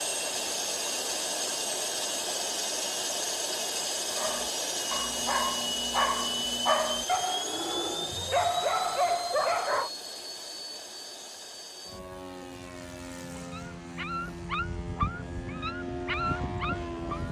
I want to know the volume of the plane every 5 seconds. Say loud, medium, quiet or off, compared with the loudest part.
loud, loud, medium, loud.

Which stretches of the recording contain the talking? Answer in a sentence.
The talking can't be heard in this clip.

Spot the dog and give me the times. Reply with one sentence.
The dog can be heard from 4.2 to 9.9 s and from 13.3 to 17.2 s.